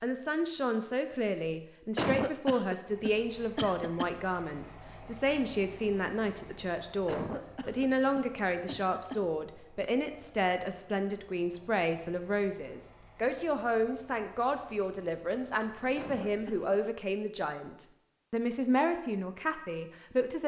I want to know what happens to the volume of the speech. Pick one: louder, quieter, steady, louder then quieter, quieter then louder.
steady.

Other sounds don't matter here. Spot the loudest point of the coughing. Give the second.
2 s.